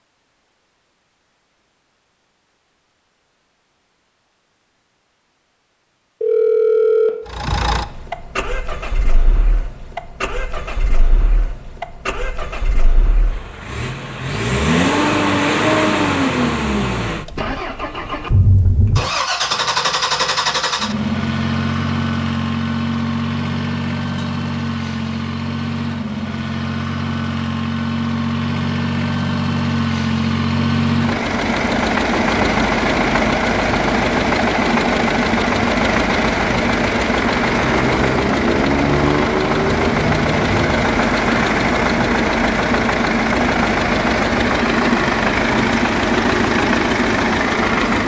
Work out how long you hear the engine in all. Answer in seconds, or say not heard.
41 s.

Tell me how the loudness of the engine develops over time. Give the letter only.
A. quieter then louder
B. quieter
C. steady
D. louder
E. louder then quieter
D.